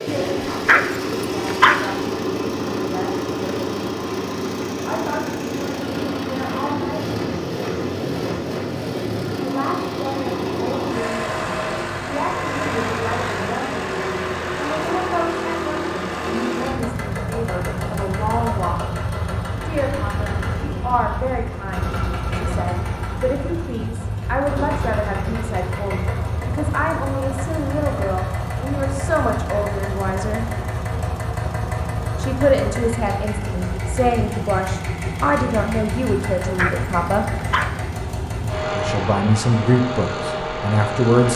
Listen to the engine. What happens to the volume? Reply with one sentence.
The loudness of the engine stays about the same.